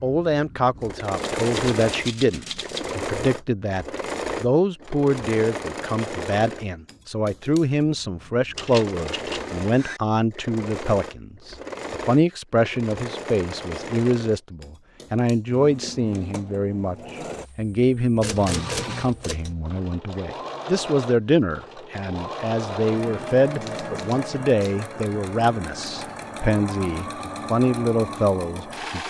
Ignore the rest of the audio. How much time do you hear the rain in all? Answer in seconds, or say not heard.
not heard.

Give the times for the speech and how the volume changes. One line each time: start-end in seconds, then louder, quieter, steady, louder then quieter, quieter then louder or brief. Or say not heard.
0.0-29.0 steady.